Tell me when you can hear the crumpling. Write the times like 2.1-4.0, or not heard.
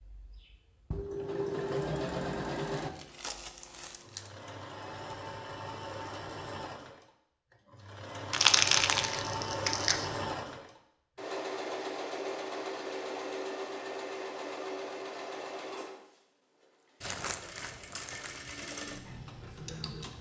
2.8-4.3, 8.3-10.1, 17.0-18.4.